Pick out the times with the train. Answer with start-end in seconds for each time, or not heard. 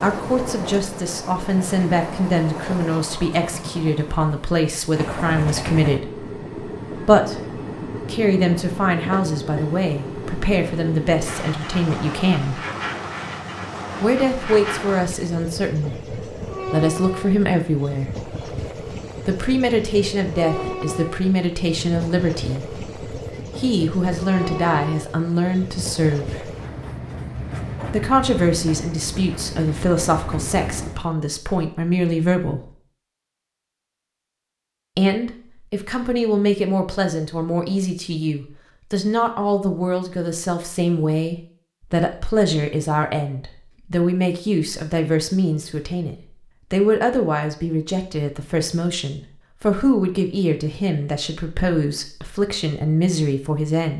0.0-31.1.